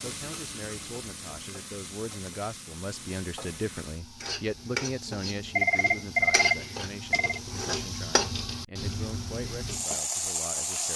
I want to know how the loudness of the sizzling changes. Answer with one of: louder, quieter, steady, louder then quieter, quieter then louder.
louder.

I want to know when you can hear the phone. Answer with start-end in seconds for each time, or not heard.
5.2-7.4.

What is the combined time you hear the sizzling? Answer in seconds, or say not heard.
11 s.